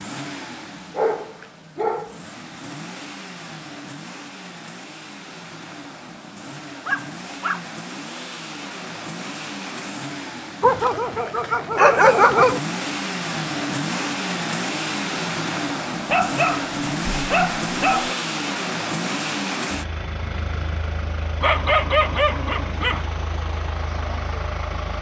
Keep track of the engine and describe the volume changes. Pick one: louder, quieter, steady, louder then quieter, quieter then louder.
louder then quieter.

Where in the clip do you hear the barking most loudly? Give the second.
12 s.